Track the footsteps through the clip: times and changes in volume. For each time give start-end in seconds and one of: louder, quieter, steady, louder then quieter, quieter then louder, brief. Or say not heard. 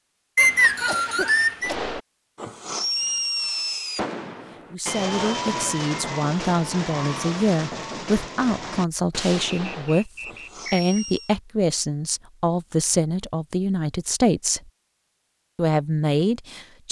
not heard.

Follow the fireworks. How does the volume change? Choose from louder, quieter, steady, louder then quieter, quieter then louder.
quieter.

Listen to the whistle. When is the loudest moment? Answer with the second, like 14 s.
1 s.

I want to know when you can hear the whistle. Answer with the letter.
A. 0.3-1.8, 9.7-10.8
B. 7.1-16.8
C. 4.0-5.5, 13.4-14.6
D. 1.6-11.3
A.